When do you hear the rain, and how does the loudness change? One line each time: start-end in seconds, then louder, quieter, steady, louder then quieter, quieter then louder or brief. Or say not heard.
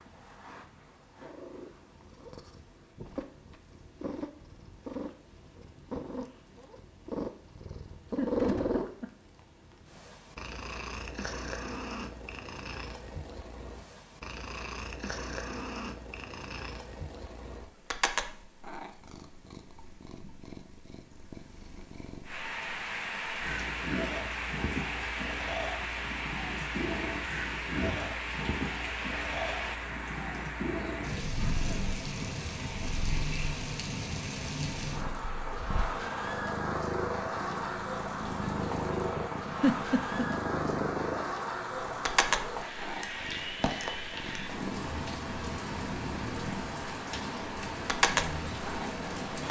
22.2-49.4 steady.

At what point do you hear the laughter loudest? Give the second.
40 s.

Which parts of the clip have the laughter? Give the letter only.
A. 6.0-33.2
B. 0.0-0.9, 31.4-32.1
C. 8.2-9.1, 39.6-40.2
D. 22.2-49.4
C.